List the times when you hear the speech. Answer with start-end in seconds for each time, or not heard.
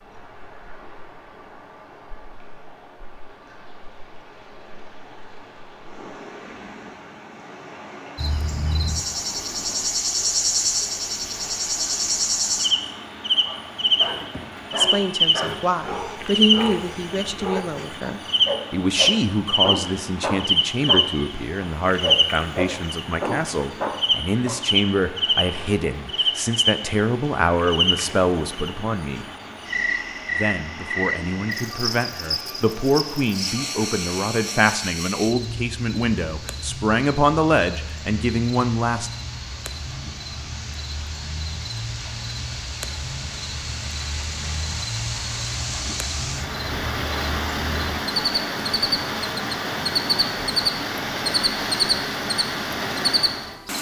14.8-29.2, 30.3-39.1.